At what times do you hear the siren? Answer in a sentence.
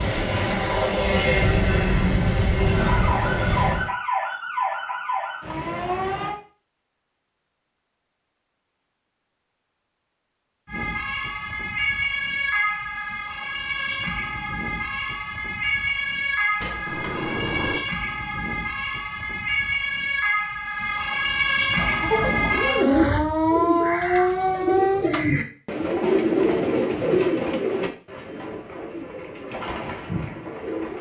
The siren can be heard from 2.8 to 6.3 s and from 10.7 to 25.1 s.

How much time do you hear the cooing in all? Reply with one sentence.
You can hear the cooing for 9 seconds altogether.